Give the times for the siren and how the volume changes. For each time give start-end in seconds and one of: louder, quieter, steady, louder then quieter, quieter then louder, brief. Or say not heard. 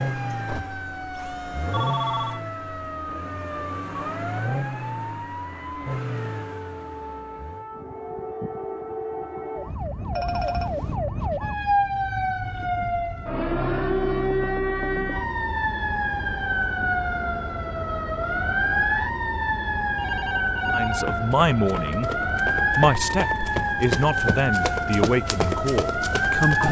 0.0-26.6 louder.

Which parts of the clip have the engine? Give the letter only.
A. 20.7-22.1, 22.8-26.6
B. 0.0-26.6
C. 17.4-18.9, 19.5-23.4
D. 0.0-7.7
D.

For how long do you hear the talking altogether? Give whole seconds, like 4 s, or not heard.
5 s.